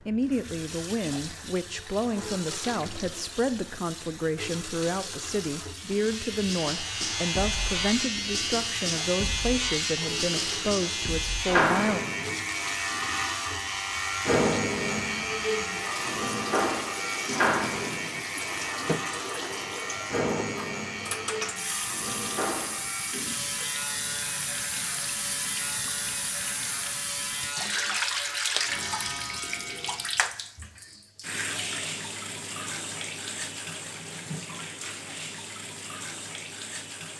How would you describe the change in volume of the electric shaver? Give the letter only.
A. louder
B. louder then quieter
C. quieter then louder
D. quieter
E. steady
D.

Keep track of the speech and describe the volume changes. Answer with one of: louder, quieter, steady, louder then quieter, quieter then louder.
steady.